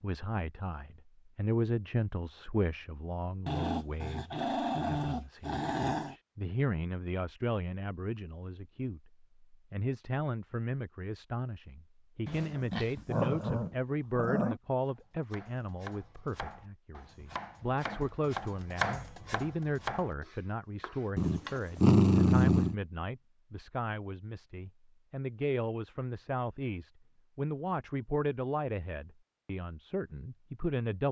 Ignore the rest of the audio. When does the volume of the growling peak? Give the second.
22 s.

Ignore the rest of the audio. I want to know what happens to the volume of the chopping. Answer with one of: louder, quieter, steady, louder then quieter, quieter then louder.
louder then quieter.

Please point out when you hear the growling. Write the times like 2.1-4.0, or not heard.
3.5-6.2, 12.2-14.6, 21.1-22.8.